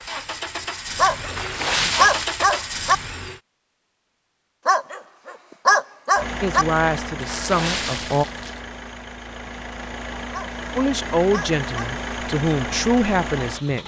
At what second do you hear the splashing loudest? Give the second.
2 s.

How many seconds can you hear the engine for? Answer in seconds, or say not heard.
11 s.